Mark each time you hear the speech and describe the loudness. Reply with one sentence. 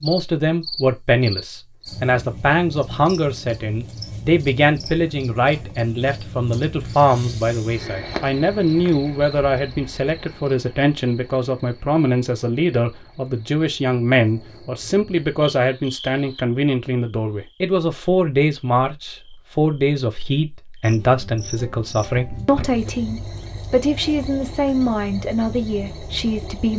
The speech can be heard from 0.0 to 26.7 s, at a steady volume.